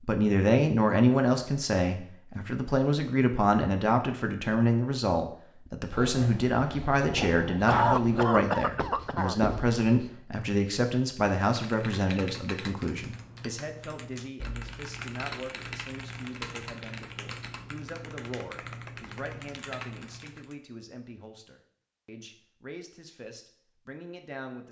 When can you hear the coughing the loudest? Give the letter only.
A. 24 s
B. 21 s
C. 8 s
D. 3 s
C.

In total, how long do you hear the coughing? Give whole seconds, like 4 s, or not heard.
2 s.